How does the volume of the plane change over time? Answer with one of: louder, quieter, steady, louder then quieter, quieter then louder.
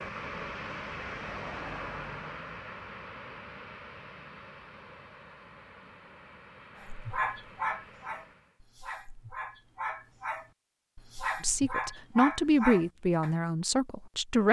quieter.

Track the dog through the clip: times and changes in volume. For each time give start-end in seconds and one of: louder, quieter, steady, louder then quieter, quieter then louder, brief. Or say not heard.
6.8-13.3 quieter then louder.